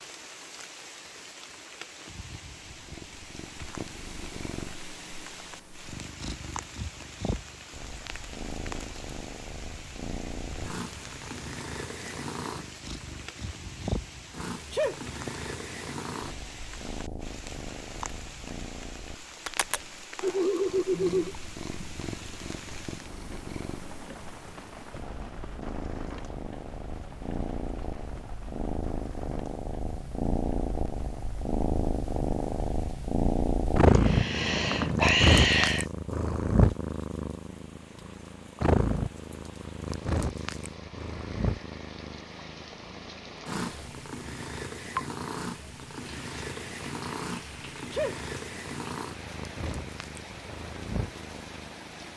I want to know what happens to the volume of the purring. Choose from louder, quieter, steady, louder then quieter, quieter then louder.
louder then quieter.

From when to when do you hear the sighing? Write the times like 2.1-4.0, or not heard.
20.2-21.4, 33.9-35.9.